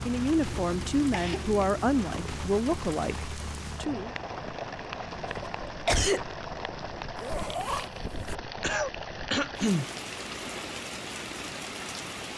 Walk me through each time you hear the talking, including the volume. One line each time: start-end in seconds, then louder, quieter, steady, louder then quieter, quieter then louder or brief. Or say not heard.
0.0-4.1 quieter.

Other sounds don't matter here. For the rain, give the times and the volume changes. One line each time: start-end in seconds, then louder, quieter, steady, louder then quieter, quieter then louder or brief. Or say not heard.
0.0-12.3 steady.